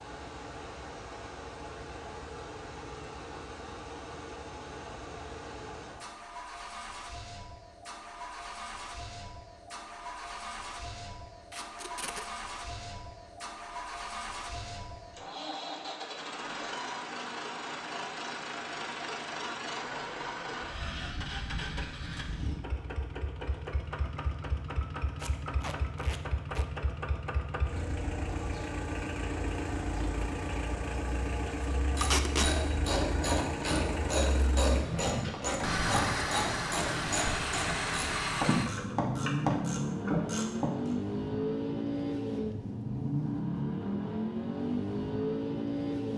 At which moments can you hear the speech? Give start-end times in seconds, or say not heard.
not heard.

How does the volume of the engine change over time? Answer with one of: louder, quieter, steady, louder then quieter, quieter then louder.
louder.